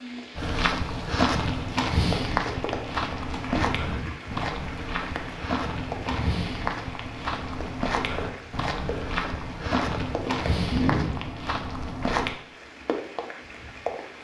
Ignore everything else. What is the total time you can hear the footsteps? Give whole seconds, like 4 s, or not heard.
12 s.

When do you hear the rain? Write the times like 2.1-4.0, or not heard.
0.0-14.1.